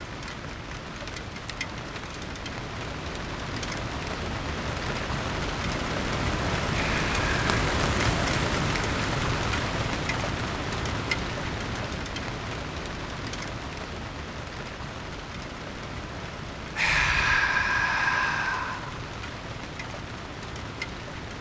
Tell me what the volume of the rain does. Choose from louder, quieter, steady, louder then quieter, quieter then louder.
louder then quieter.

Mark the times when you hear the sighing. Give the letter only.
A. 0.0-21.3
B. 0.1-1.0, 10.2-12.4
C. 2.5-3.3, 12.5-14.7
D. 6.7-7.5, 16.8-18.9
D.